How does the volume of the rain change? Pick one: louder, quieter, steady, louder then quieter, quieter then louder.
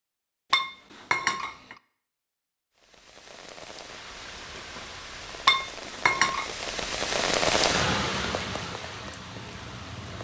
louder then quieter.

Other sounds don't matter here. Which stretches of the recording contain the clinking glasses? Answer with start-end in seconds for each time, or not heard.
0.5-1.8, 5.5-6.5.